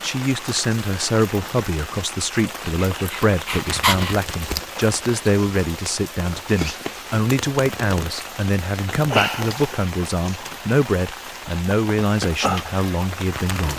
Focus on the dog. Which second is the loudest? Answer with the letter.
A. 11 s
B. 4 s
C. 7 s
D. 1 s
B.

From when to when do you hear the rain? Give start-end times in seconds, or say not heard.
0.0-13.7.